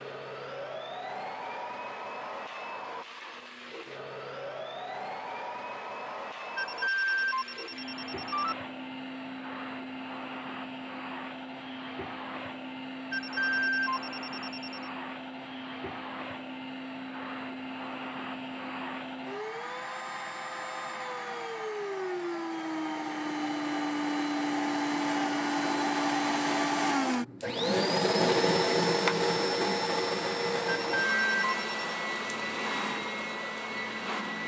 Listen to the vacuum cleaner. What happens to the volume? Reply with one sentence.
The volume of the vacuum cleaner goes up.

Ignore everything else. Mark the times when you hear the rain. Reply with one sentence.
You can't hear the rain here.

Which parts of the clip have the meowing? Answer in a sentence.
The meowing can't be heard in this clip.